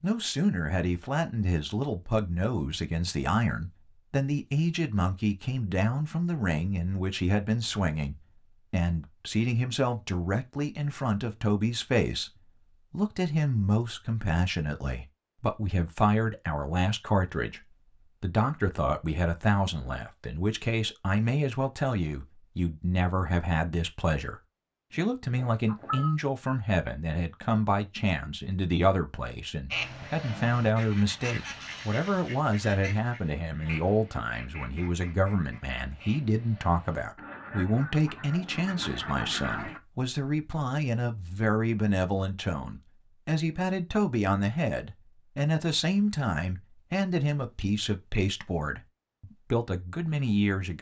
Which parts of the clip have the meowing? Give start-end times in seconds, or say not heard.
25.4-26.1.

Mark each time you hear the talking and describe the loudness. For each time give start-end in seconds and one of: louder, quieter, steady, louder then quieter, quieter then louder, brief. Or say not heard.
0.0-50.7 steady.